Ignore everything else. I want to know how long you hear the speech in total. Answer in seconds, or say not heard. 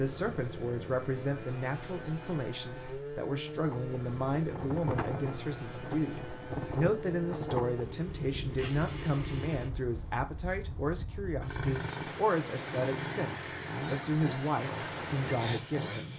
16 s.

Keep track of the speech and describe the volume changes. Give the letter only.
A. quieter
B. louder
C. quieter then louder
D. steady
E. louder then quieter
D.